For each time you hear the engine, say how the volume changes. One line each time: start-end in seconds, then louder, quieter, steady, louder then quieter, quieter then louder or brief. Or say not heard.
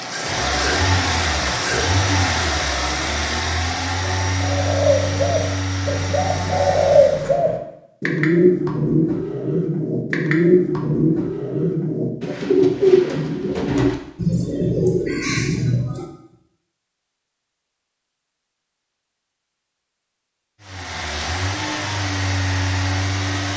0.0-7.4 quieter
20.6-23.5 brief.